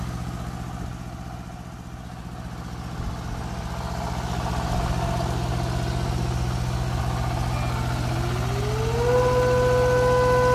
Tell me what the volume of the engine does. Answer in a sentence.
The loudness of the engine goes up.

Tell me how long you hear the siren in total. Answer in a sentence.
You can hear the siren for 3 seconds altogether.